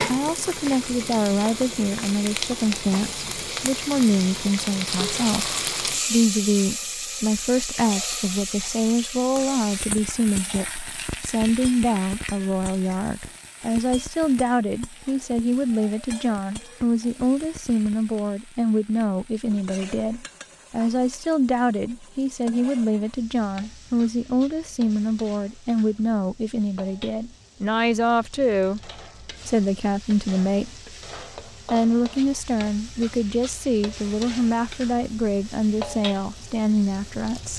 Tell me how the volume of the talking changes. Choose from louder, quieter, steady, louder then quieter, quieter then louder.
steady.